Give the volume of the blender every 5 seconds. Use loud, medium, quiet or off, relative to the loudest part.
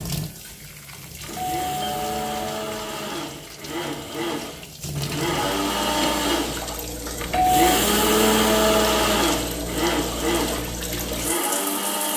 medium, loud, medium.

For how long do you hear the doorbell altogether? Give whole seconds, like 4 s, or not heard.
2 s.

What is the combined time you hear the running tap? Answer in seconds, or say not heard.
12 s.